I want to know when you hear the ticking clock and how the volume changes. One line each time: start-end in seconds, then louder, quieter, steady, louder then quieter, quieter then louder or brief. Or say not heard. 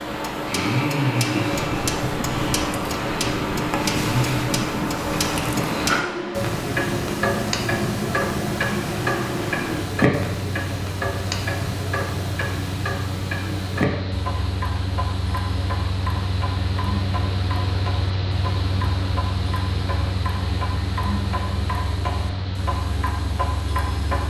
0.0-24.2 quieter.